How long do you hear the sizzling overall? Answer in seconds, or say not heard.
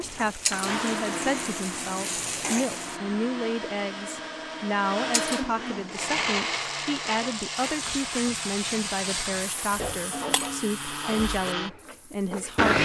10 s.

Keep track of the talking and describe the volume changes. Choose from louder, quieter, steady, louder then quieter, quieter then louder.
steady.